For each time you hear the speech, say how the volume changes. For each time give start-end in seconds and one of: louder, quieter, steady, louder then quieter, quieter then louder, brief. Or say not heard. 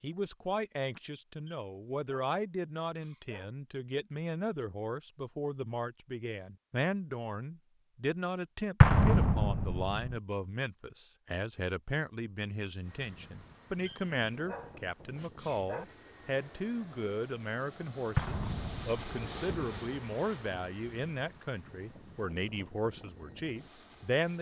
0.0-24.3 steady.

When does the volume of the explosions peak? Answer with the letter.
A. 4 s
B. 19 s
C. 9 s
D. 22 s
C.